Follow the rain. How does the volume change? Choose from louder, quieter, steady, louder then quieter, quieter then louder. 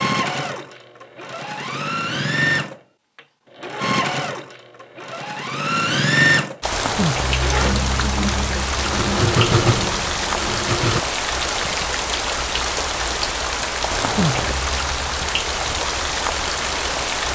steady.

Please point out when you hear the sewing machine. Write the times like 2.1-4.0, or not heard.
0.0-11.0.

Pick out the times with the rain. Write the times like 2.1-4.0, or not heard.
6.6-17.3.